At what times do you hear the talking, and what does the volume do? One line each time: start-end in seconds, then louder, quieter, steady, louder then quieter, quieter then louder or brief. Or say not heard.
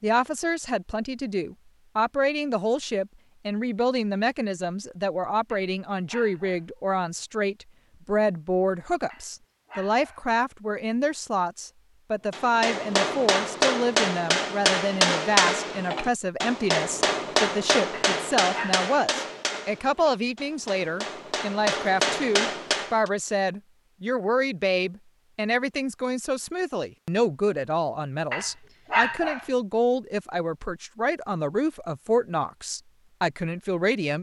0.0-34.1 steady.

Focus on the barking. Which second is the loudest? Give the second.
29 s.